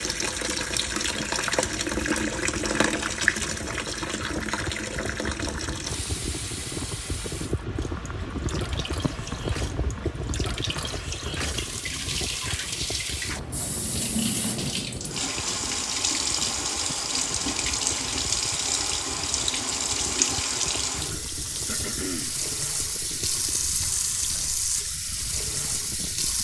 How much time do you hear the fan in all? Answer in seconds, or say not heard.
26 s.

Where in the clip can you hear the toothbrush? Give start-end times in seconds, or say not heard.
not heard.